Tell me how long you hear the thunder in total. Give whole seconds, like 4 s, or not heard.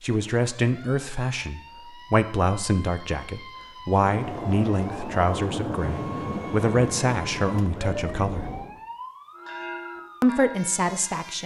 5 s.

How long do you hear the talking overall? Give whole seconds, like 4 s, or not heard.
10 s.